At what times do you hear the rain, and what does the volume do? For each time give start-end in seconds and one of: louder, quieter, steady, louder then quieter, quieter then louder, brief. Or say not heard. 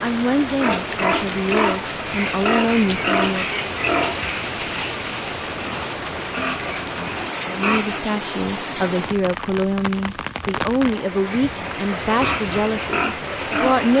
0.0-13.9 steady.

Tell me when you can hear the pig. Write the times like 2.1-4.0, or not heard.
0.6-8.0, 11.3-13.9.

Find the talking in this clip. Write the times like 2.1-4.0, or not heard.
0.0-3.5, 7.5-13.9.